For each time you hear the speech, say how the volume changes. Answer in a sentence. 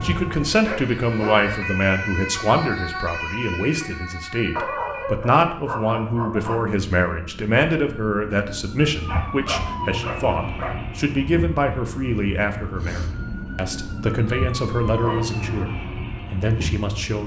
You can hear the speech from 0.0 to 15.7 s, at a steady volume; and briefly from 16.3 to 17.2 s.